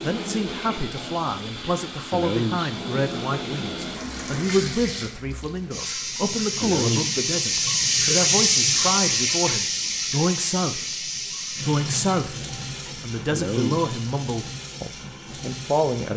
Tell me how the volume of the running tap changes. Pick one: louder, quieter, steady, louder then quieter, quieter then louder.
louder then quieter.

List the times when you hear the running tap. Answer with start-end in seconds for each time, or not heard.
0.0-16.1.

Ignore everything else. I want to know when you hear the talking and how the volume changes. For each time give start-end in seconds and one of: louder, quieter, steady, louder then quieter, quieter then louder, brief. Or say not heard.
0.0-10.8 steady
11.7-16.1 quieter.